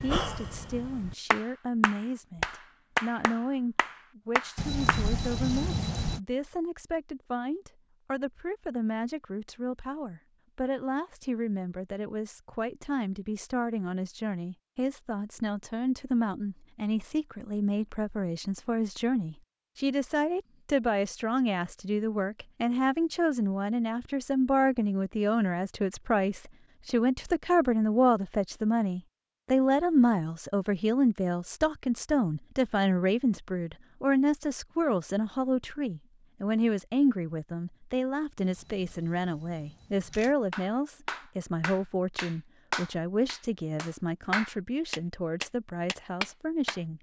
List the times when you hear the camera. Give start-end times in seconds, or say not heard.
4.5-6.2, 38.4-40.4.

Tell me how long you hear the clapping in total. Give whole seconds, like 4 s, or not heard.
11 s.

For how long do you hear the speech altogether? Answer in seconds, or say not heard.
47 s.